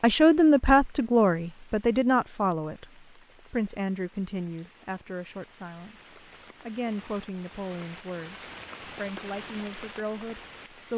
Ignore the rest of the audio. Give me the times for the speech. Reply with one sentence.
The speech can be heard from 0.0 to 10.9 s.